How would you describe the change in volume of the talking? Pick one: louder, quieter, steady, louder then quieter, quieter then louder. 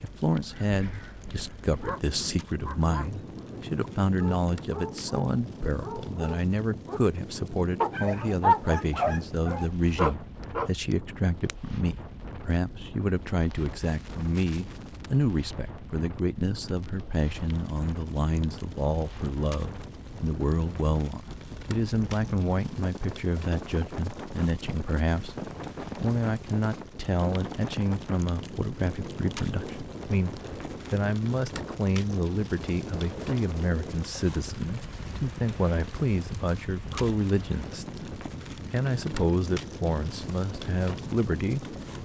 steady.